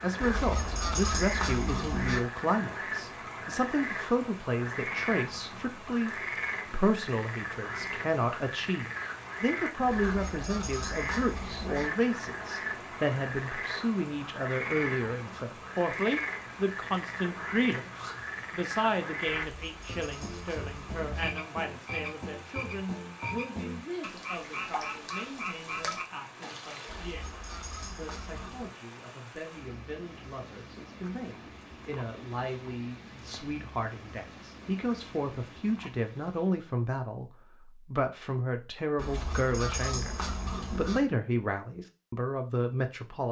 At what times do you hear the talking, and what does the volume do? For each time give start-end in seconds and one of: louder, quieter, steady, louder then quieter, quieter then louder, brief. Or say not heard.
0.0-43.2 quieter then louder.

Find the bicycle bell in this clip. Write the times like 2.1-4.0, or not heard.
not heard.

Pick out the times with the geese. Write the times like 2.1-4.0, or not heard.
0.2-2.2, 9.8-11.9, 19.4-21.3, 26.9-28.8, 39.0-41.0.